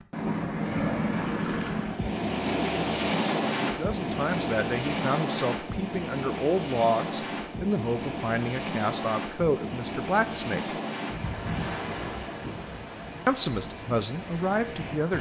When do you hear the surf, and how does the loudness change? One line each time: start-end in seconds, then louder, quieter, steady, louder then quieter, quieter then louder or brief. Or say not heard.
0.0-15.1 quieter.